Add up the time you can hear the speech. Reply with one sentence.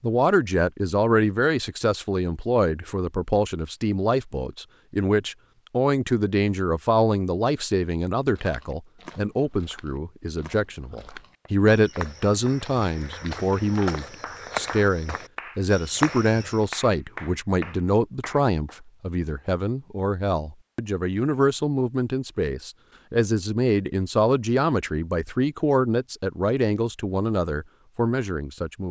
You can hear the speech for 29 seconds altogether.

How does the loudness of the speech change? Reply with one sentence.
The loudness of the speech stays about the same.